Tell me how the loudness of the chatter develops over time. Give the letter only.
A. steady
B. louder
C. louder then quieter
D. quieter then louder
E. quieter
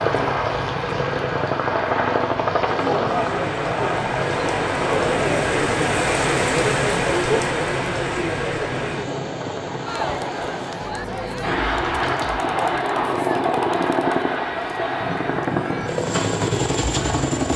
E.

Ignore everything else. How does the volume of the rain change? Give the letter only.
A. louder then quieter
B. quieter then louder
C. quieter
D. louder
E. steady
A.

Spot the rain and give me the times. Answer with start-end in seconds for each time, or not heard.
0.0-12.4.